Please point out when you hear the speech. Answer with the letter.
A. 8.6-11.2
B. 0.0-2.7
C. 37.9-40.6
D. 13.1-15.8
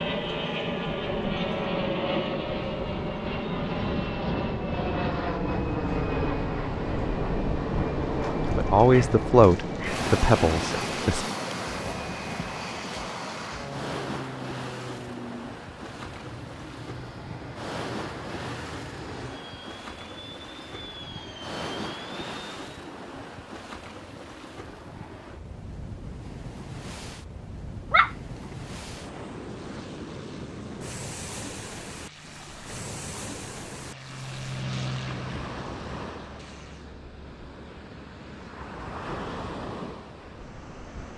A.